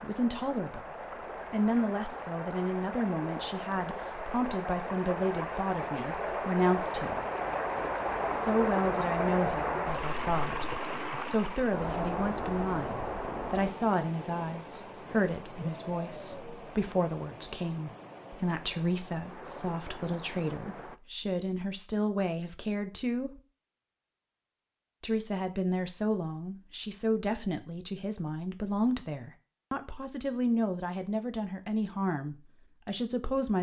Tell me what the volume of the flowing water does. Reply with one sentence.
The loudness of the flowing water goes up, then down.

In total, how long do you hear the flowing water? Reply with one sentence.
You can hear the flowing water for 21 seconds altogether.